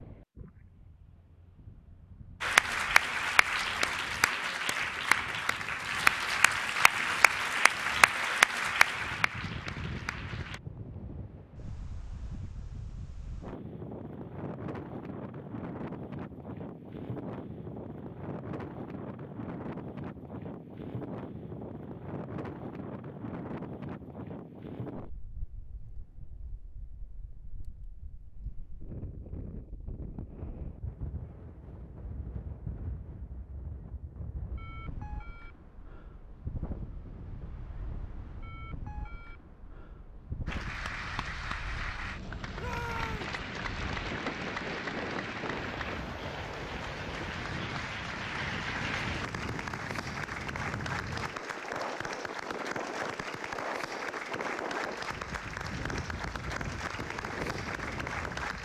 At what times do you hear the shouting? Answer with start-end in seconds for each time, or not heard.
42.5-43.4.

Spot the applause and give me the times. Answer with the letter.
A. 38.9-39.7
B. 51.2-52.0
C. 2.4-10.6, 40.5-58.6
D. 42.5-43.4
C.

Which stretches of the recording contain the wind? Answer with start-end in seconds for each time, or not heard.
0.0-58.6.